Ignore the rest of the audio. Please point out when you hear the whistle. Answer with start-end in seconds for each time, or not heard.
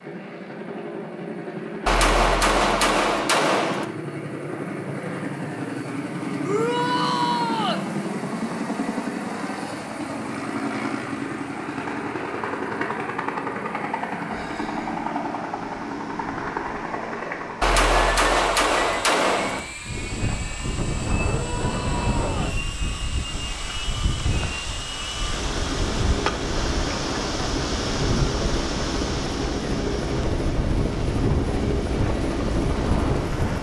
not heard.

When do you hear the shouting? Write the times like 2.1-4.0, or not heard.
6.4-7.8, 21.2-22.6.